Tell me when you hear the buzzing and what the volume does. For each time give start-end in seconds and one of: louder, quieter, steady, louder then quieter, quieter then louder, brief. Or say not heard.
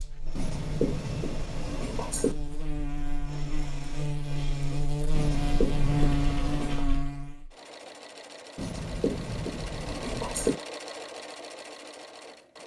0.0-7.5 louder.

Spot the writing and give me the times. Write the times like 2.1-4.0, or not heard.
0.3-2.4, 5.1-6.8, 8.6-10.6.